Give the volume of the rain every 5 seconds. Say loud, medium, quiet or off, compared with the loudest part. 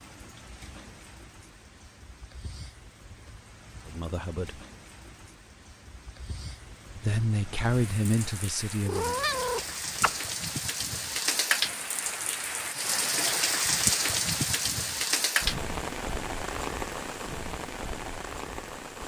quiet, quiet, loud, loud.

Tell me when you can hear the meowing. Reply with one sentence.
The meowing can be heard from 8.8 to 10.2 s.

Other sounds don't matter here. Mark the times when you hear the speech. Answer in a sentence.
You can hear the speech from 3.9 to 4.6 s and from 7.0 to 9.2 s.